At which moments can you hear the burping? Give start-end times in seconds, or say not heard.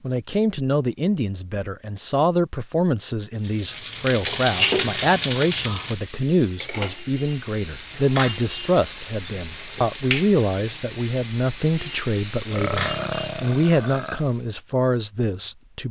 12.5-14.2.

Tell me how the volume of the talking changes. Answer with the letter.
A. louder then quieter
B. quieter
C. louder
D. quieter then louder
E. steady
E.